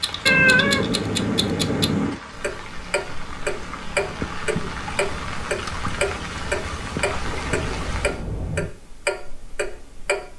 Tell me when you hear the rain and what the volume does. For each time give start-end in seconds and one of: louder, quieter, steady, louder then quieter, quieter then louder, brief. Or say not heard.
0.0-8.2 louder.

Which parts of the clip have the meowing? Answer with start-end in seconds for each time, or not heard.
0.2-2.2, 7.2-8.8.